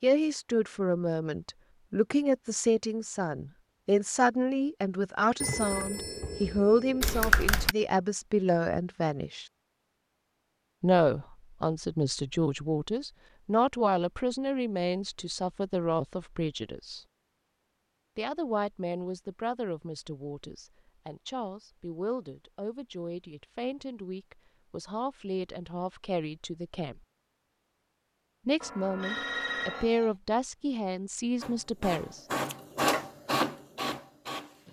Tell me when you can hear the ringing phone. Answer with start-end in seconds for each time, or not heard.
5.4-7.3, 28.6-30.1.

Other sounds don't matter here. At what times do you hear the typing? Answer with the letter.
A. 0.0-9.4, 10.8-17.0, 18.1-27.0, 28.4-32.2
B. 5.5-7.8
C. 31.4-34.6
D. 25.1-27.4
B.